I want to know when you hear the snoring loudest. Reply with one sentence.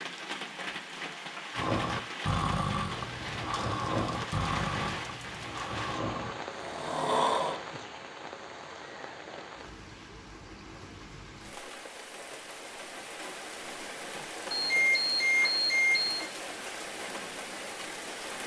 The volume of the snoring peaks at 7 seconds.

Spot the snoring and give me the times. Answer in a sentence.
The snoring can be heard from 1.6 to 7.6 s.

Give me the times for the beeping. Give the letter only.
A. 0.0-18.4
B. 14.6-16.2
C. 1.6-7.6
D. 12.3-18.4
B.